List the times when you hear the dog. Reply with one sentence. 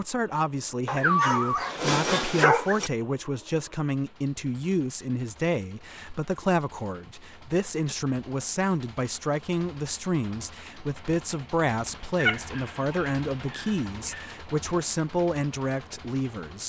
You can hear the dog from 0.8 to 2.9 s and from 12.2 to 14.3 s.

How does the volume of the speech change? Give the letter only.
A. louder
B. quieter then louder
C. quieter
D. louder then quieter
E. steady
E.